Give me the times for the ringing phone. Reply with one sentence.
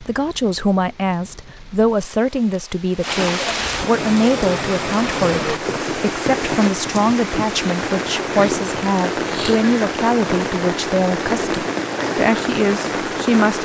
The ringing phone can't be heard in this clip.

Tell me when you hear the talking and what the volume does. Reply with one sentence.
The talking can be heard from 0.0 to 13.5 s, at a steady volume.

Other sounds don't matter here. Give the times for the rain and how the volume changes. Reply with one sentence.
You can hear the rain from 0.0 to 13.5 s, getting louder.